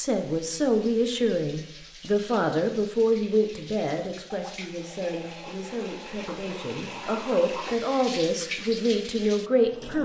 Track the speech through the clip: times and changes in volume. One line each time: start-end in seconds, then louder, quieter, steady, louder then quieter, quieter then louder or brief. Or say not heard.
0.0-9.9 quieter then louder.